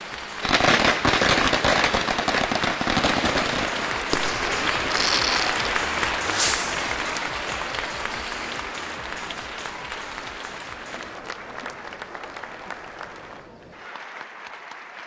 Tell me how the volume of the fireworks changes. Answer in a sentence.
The loudness of the fireworks goes down.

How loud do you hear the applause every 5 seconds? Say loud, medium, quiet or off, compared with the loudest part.
loud, loud, medium.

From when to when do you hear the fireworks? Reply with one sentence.
The fireworks can be heard from 0.4 to 7.2 s.